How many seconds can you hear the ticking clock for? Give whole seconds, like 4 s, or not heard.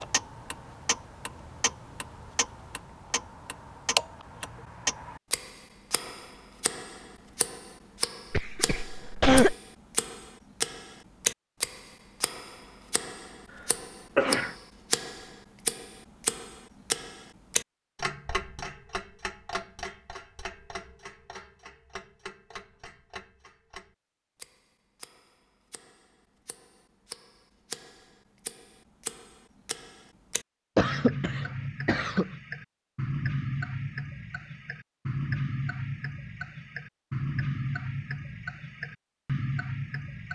40 s.